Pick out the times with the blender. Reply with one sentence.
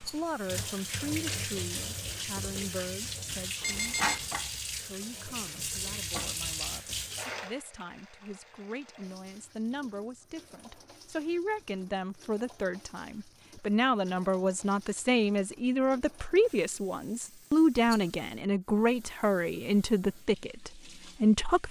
You can't hear the blender here.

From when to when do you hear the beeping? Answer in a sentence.
The beeping can be heard from 3.6 to 4.3 s.